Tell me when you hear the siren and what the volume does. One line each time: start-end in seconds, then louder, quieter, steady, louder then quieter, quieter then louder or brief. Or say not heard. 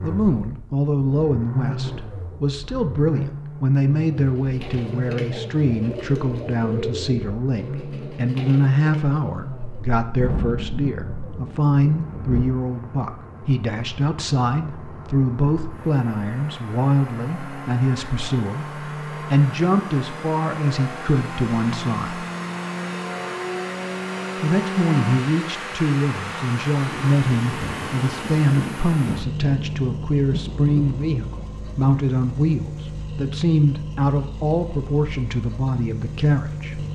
not heard.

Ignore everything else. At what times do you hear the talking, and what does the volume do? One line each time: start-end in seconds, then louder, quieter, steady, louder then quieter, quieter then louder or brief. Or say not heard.
0.0-22.2 steady
24.4-36.8 steady.